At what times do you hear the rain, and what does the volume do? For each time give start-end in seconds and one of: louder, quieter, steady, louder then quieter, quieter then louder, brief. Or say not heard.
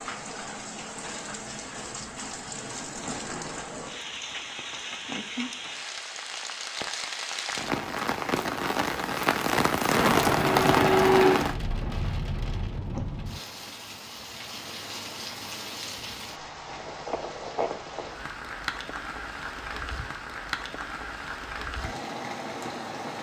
0.0-23.1 louder then quieter.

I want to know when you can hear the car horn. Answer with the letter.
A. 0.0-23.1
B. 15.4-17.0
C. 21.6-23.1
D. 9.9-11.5
D.